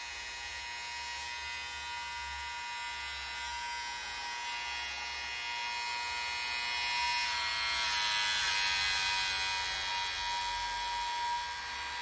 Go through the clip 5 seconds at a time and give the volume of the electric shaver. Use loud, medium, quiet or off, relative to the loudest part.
medium, loud, medium.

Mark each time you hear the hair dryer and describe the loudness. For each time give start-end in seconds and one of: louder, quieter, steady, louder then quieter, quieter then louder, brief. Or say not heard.
0.0-11.9 louder.